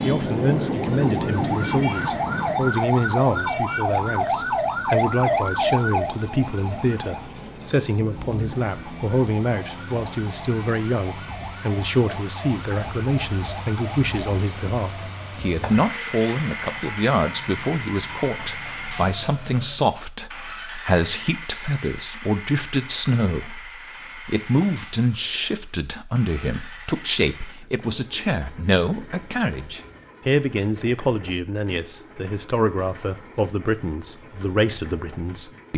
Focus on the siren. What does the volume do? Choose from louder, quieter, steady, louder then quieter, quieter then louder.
quieter.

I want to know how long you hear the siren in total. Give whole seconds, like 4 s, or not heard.
20 s.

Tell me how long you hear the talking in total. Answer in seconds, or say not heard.
36 s.